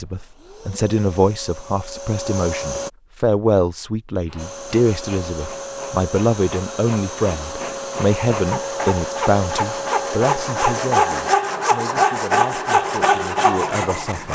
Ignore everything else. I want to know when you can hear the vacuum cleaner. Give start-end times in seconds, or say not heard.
0.0-2.9, 4.3-11.4.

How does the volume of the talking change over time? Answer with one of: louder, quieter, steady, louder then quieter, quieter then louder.
quieter.